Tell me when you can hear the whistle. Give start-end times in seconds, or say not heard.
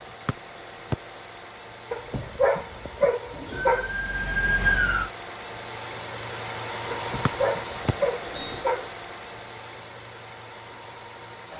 0.2-0.9, 7.2-8.7.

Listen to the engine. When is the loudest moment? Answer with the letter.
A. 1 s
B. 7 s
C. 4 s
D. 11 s
B.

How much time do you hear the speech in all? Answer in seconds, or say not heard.
not heard.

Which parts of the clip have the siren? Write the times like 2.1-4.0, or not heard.
3.5-5.1.